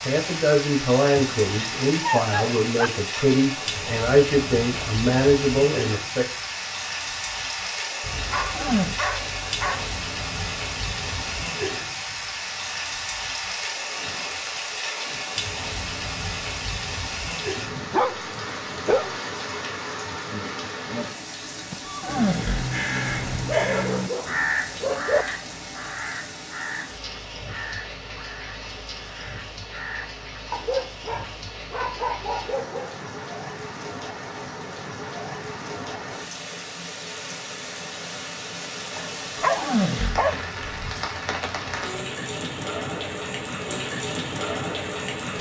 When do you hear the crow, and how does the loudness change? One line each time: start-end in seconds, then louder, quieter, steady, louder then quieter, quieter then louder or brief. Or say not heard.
21.7-30.4 quieter.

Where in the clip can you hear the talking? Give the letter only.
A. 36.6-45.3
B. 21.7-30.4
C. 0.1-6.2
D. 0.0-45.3
C.